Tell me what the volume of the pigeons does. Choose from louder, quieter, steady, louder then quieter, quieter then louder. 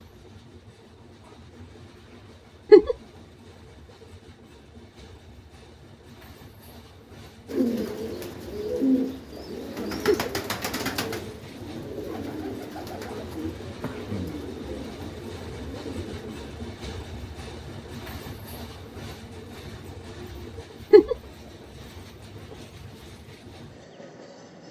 quieter.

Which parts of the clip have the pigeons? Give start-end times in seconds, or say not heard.
7.5-16.6.